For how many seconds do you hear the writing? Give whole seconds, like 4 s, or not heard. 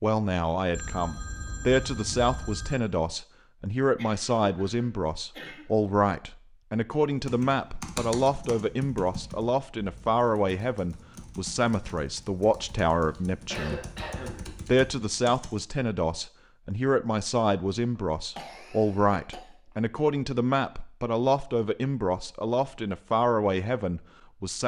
not heard.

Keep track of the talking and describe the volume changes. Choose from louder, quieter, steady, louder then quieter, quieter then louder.
steady.